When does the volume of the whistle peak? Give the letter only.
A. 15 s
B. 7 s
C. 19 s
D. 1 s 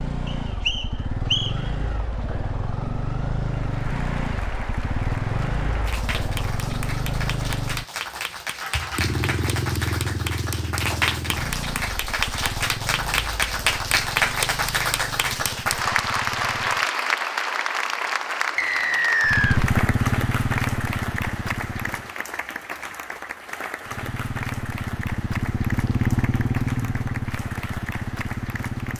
C.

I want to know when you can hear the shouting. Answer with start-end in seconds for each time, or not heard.
not heard.